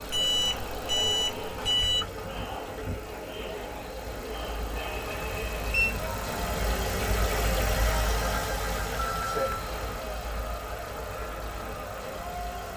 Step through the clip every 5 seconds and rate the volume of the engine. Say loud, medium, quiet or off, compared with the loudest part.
medium, loud, medium.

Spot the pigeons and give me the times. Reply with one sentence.
The pigeons can't be heard in this clip.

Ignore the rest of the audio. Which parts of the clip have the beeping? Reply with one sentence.
You can hear the beeping from 0.1 to 2.0 s, from 4.8 to 5.9 s and from 9.2 to 9.7 s.